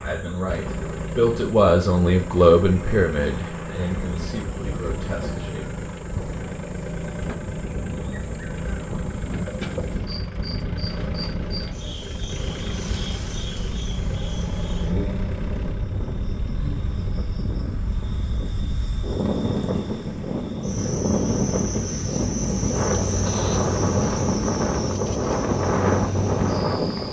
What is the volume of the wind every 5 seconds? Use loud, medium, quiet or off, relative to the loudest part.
quiet, quiet, quiet, medium, loud, loud.